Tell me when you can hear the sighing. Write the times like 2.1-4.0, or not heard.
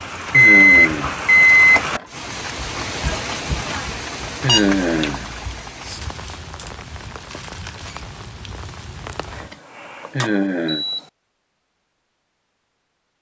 0.3-1.1, 4.4-5.2, 10.1-10.8.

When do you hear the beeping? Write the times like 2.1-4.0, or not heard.
0.3-2.0, 4.5-5.6, 9.3-11.0.